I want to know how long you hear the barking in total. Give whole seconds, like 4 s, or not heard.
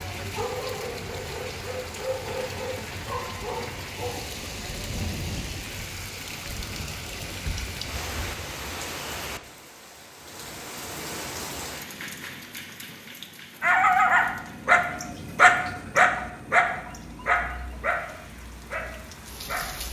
10 s.